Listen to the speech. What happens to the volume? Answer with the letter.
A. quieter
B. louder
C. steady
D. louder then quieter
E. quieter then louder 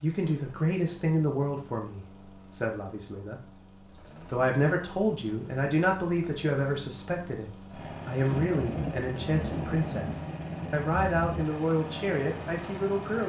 C.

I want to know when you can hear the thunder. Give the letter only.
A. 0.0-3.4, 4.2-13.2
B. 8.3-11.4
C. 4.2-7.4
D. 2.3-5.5
B.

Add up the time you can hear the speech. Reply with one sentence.
The speech can be heard for 12 seconds in total.